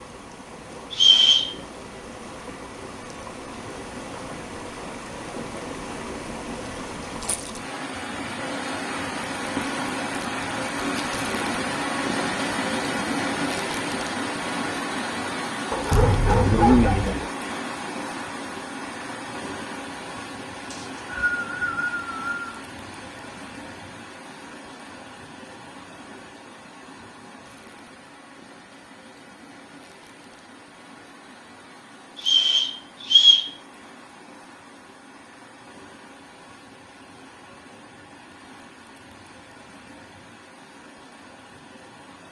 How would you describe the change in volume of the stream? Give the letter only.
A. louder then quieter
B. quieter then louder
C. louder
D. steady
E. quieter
A.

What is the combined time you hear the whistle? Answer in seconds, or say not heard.
4 s.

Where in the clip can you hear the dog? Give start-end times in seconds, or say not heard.
15.7-17.3.